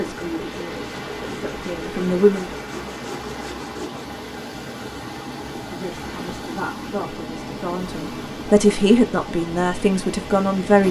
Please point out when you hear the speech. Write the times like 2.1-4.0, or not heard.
0.0-2.5, 5.7-10.8.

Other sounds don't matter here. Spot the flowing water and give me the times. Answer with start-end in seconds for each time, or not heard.
0.0-10.8.